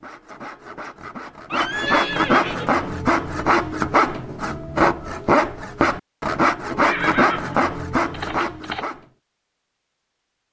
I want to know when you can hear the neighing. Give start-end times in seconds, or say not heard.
1.5-3.0, 6.8-8.8.